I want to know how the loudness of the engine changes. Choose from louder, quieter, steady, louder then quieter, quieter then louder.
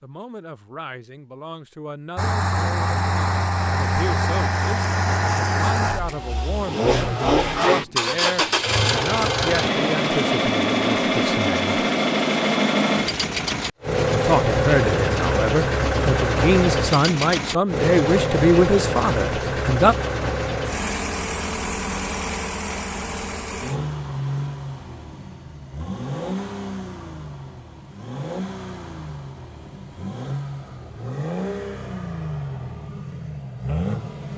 quieter.